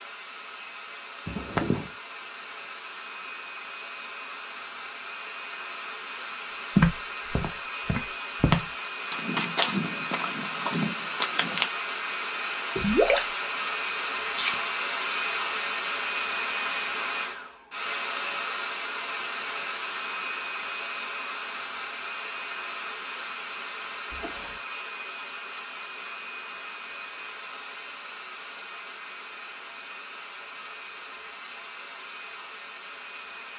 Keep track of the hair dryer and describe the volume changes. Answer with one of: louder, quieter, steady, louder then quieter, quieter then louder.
louder then quieter.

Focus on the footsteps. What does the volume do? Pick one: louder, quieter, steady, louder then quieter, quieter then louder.
louder then quieter.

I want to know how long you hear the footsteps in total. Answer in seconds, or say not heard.
5 s.